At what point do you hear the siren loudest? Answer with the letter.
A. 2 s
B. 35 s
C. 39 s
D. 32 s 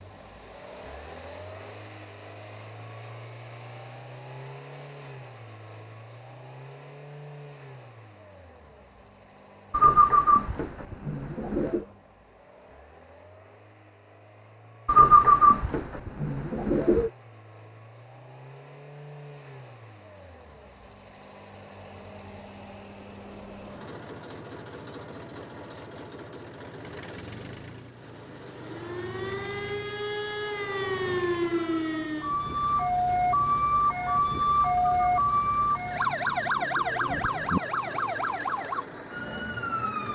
B.